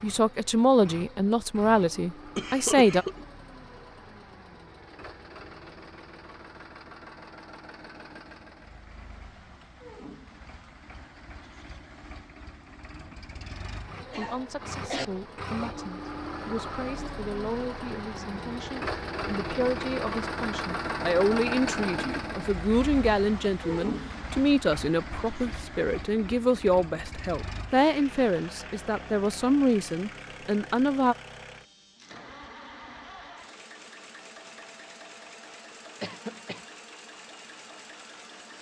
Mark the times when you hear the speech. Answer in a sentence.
You can hear the speech from 0.0 to 3.0 s and from 14.2 to 31.1 s.